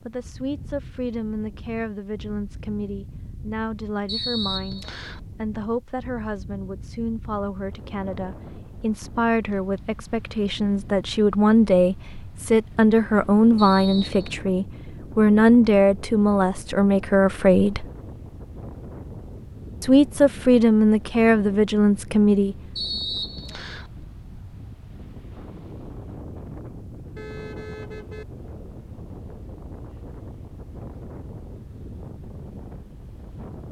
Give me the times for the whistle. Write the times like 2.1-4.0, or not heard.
4.0-5.2, 13.6-14.3, 22.8-23.9.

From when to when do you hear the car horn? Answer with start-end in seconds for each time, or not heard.
27.1-28.2.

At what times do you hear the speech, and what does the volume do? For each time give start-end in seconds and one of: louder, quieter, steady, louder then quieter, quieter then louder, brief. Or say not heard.
0.0-17.9 louder
19.8-22.6 brief.